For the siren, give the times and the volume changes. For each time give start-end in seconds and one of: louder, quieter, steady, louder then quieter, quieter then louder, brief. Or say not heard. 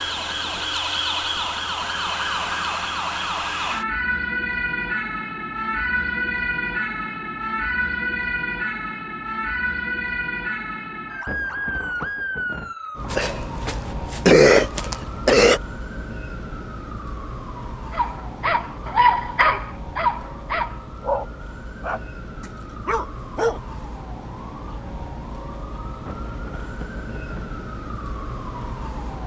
0.0-29.2 quieter.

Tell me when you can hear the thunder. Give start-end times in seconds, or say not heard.
11.2-12.8, 26.1-27.6.